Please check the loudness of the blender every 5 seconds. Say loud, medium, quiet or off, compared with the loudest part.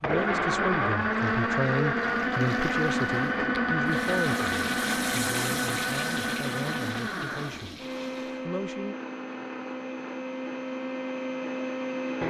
loud, medium, medium.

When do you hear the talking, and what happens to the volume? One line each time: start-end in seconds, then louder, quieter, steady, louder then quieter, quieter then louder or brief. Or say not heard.
0.0-8.9 quieter.